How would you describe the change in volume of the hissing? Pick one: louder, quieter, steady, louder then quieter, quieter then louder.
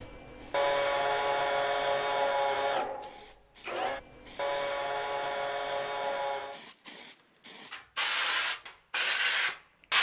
louder.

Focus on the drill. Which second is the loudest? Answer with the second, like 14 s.
1 s.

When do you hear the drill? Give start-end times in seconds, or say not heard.
0.0-6.6.